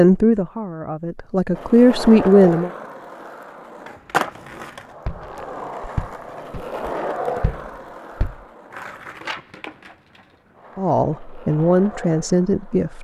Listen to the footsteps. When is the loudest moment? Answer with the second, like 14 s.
6 s.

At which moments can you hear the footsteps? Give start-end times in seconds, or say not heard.
5.0-8.4.